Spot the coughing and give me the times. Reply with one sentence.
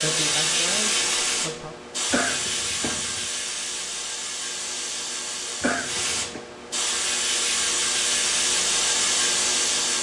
The coughing can be heard from 2.1 to 3.2 s and from 5.6 to 6.4 s.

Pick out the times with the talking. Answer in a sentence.
You can hear the talking from 0.0 to 1.8 s.